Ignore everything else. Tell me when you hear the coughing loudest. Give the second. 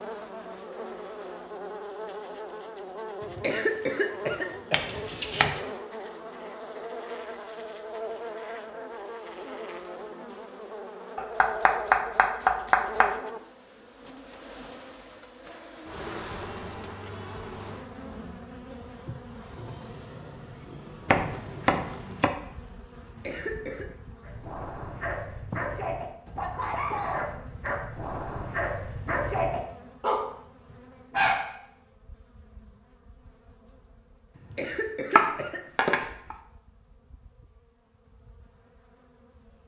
4 s.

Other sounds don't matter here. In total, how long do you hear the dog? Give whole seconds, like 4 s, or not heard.
7 s.